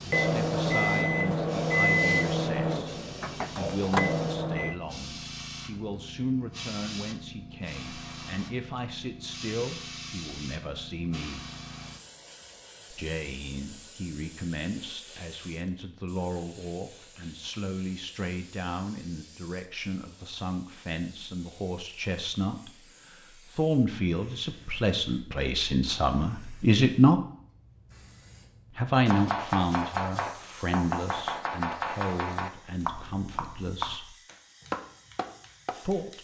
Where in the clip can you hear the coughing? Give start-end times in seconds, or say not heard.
not heard.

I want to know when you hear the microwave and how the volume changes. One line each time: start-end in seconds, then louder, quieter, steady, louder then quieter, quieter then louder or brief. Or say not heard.
0.0-4.8 quieter then louder.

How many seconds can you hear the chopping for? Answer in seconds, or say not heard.
7 s.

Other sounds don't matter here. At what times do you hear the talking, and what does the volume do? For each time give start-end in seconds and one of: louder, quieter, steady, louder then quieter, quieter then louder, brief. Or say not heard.
0.1-11.4 steady
12.9-27.2 louder
28.7-34.1 quieter
35.7-36.2 brief.